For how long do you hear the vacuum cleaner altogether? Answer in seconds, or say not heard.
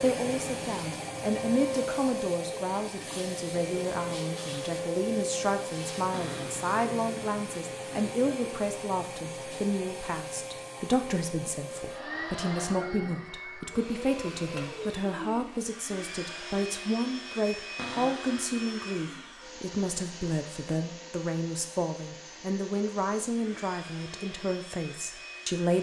26 s.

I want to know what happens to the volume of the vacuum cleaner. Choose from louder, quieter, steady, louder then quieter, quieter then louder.
quieter.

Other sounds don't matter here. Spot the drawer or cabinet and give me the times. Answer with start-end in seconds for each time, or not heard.
6.1-6.7, 17.8-18.4.